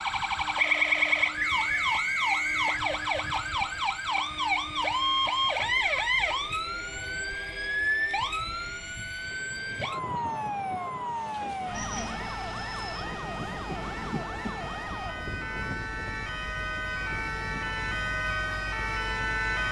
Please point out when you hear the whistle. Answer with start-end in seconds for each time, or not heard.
1.4-2.9.